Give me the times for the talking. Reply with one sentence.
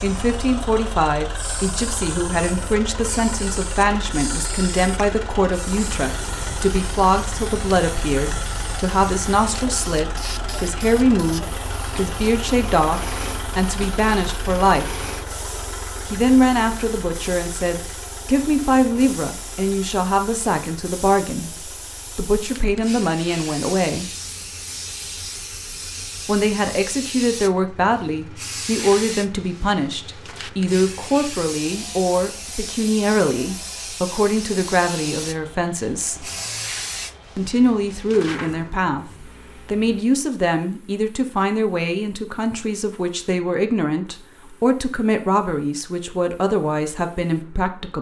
The talking can be heard from 0.0 to 14.8 s, from 16.1 to 24.1 s, from 26.2 to 36.2 s, from 37.4 to 39.0 s and from 39.6 to 47.9 s.